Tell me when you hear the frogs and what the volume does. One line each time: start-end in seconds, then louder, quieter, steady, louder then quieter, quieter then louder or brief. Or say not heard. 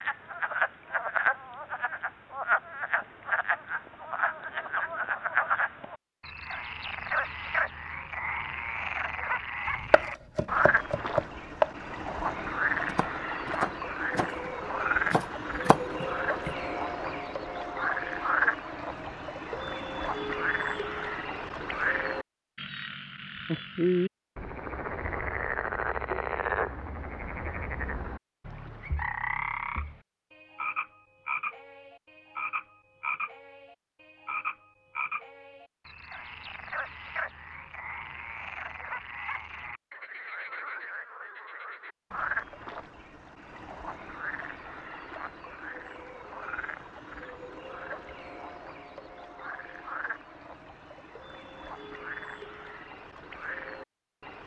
0.0-54.4 quieter.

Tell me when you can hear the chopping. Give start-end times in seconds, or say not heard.
9.9-11.7, 12.4-16.5.